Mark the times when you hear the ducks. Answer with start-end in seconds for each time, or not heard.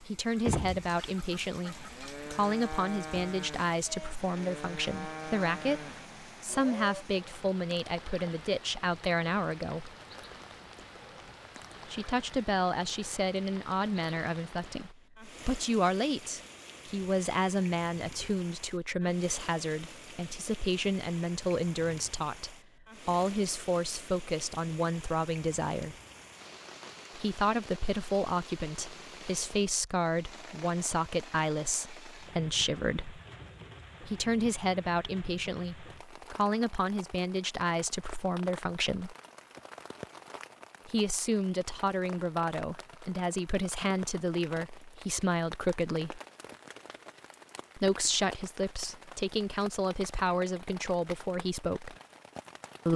0.4-2.2.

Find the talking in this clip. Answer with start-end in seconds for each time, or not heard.
0.0-9.9, 11.8-25.9, 27.1-33.2, 34.0-39.1, 40.9-46.2, 47.8-52.0.